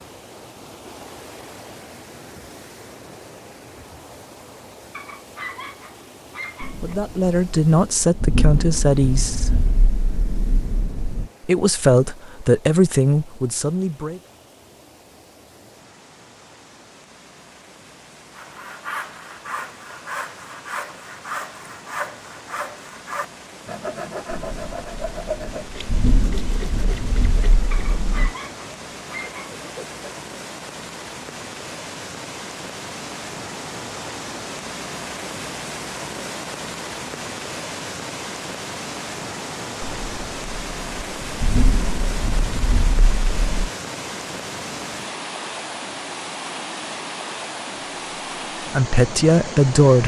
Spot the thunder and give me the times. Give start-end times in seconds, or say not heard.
6.6-11.3, 24.3-28.4, 39.8-43.7.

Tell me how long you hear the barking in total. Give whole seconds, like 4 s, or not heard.
4 s.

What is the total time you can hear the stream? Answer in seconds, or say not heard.
50 s.